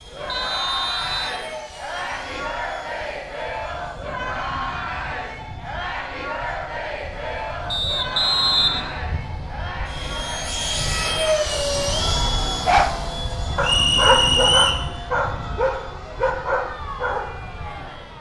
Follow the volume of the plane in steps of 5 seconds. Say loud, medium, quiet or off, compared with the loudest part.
quiet, quiet, loud, quiet.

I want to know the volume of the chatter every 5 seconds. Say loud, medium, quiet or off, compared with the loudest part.
loud, loud, medium, medium.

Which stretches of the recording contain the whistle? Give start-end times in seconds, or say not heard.
0.2-1.4, 7.7-9.0, 13.6-14.9.